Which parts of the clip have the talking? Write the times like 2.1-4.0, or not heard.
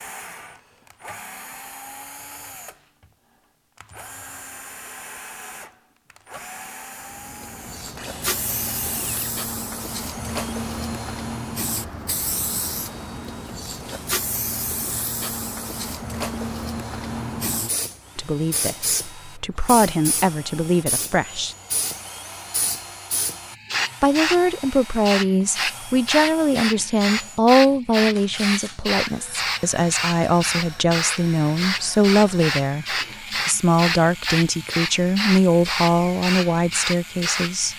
18.1-21.6, 24.0-37.7.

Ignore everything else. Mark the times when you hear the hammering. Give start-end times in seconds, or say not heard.
not heard.